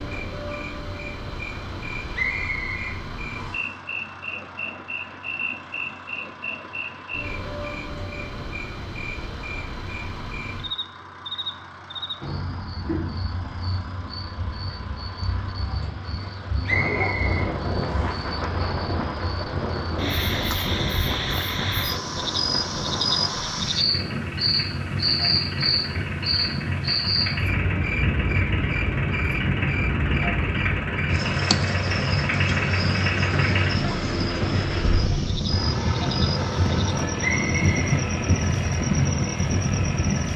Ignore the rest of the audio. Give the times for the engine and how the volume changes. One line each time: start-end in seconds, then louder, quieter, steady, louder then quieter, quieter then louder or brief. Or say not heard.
0.0-40.3 louder.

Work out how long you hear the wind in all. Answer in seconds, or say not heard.
24 s.